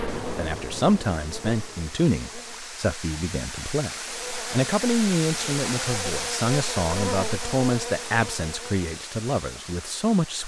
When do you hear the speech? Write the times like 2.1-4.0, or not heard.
0.3-10.4.